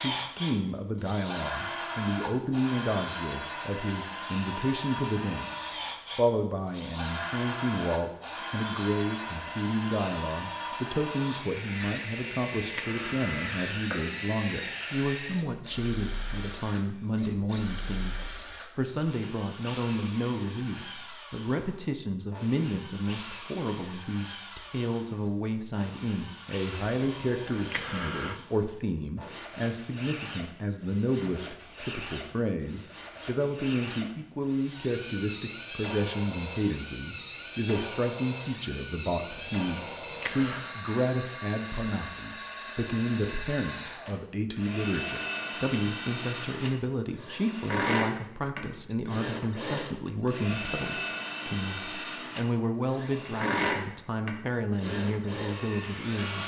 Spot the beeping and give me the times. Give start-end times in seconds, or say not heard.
11.9-13.8, 26.9-28.4, 39.2-40.8.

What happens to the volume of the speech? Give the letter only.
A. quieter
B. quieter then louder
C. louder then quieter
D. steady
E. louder
D.